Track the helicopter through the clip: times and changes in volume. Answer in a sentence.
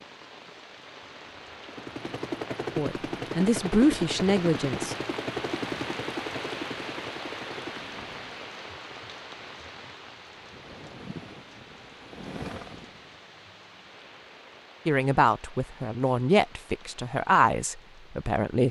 The helicopter can be heard from 1.6 to 8.3 s, getting quieter; and briefly from 10.2 to 13.2 s.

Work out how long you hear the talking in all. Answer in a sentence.
You can hear the talking for 6 seconds altogether.